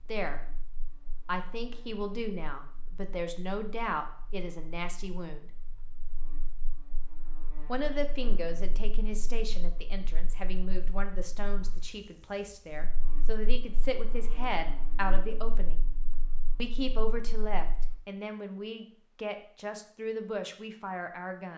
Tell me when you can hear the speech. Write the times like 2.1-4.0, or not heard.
0.1-5.5, 7.7-15.8, 16.6-21.5.